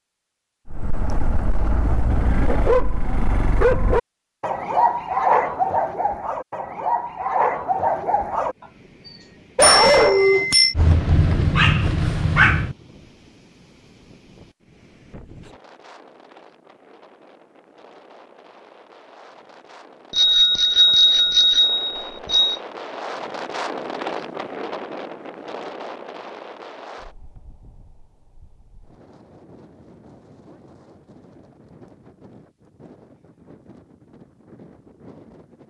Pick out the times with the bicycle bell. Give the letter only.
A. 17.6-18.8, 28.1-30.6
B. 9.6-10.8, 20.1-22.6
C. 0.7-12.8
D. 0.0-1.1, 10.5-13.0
B.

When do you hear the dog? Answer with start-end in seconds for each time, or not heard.
0.7-12.8.